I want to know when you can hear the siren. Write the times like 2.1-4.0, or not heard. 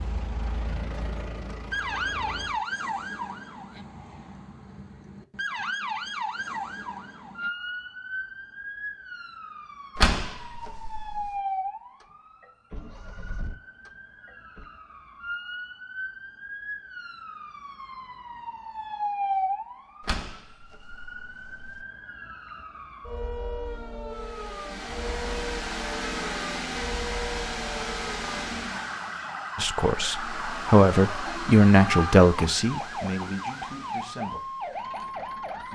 0.1-35.7.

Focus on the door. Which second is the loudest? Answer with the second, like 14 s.
10 s.